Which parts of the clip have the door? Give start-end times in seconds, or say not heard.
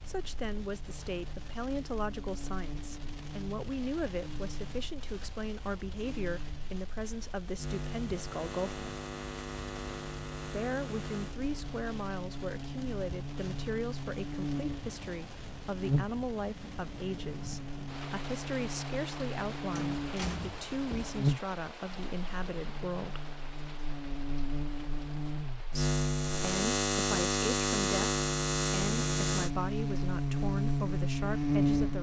19.8-21.2.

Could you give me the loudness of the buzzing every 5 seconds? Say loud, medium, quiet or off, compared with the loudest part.
quiet, quiet, medium, medium, medium, loud, loud.